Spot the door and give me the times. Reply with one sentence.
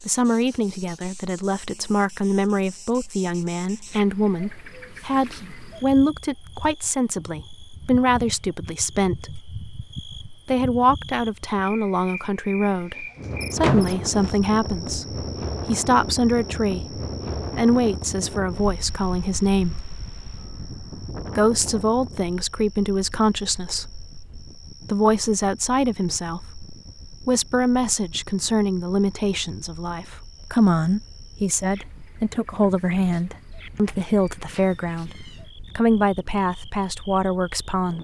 You can hear the door from 13.6 to 14.3 s and from 33.8 to 35.4 s.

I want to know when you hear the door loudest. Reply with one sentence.
The volume of the door peaks at 14 seconds.